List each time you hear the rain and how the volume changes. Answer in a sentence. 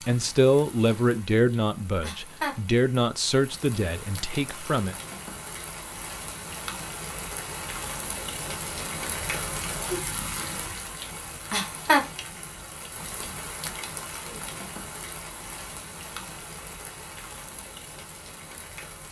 You can hear the rain from 0.0 to 19.0 s, getting louder then quieter.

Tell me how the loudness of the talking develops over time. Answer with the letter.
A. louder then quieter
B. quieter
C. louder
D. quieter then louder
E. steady
B.